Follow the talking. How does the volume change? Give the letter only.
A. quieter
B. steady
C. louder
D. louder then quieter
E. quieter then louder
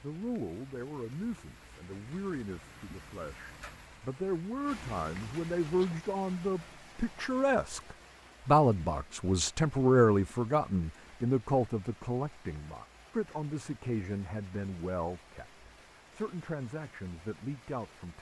D.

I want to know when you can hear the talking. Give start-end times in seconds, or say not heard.
0.0-18.1.